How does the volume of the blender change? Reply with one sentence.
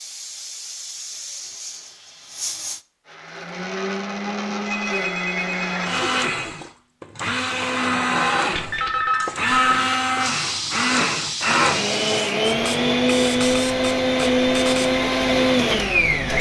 The loudness of the blender goes up.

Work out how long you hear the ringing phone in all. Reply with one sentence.
The ringing phone can be heard for 3 seconds in total.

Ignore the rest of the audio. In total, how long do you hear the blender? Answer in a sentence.
You can hear the blender for 13 seconds altogether.